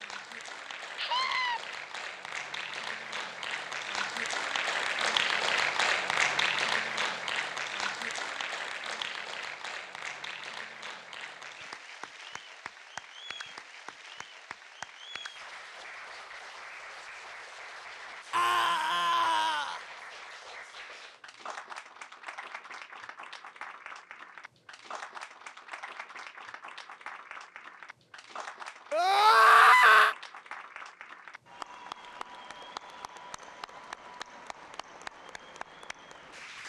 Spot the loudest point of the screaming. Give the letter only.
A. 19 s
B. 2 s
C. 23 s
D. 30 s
D.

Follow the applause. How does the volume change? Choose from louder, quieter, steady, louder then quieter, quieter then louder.
quieter.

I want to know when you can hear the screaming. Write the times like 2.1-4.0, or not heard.
0.9-1.6, 18.3-19.9, 28.9-30.1.